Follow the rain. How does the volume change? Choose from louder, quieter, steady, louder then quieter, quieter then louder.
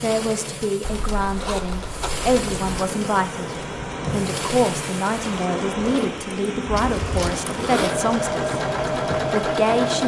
steady.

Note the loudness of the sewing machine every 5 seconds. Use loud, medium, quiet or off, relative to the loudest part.
medium, loud.